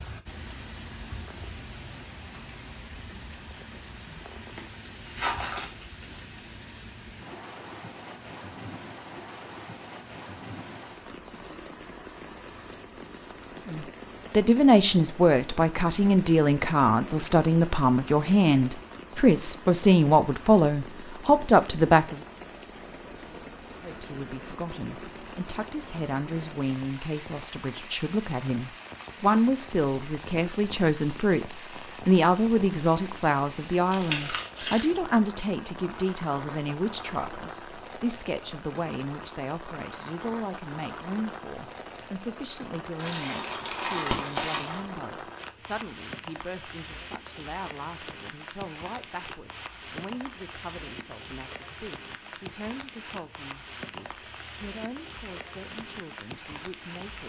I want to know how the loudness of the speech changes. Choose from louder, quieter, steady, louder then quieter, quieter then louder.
quieter.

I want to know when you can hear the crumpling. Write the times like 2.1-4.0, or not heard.
4.0-6.2, 33.9-34.9, 43.0-44.8.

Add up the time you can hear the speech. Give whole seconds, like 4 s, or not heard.
42 s.